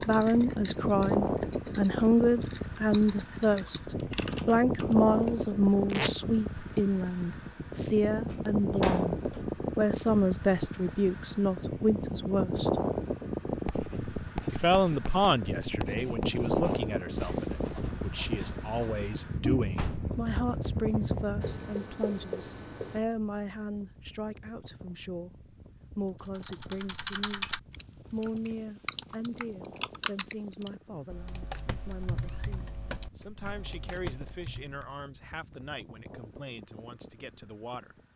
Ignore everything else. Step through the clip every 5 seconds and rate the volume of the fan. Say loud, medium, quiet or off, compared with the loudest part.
loud, loud, loud, loud, medium, quiet, quiet, quiet.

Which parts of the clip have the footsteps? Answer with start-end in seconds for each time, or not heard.
not heard.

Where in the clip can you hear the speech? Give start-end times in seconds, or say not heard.
0.0-12.7, 14.5-25.3, 25.9-27.4, 28.1-38.0.